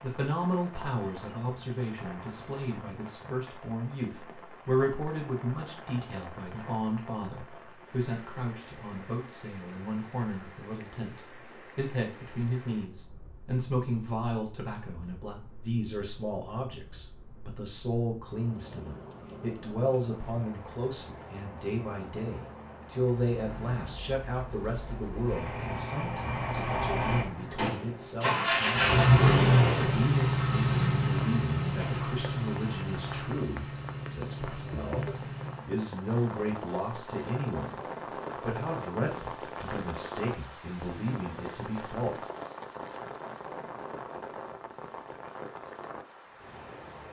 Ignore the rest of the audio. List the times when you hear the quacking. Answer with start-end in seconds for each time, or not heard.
not heard.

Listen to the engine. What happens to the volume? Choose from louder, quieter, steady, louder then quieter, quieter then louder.
louder then quieter.